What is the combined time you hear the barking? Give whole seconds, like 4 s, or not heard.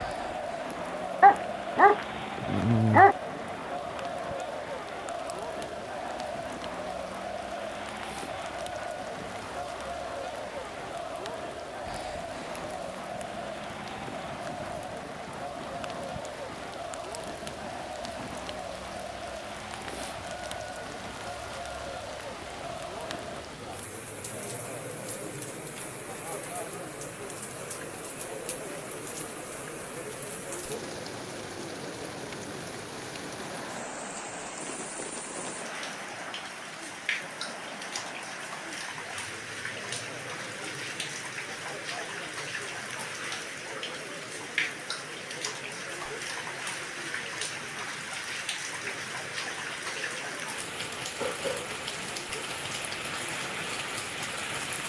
2 s.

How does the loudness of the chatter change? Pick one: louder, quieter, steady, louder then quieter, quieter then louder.
quieter.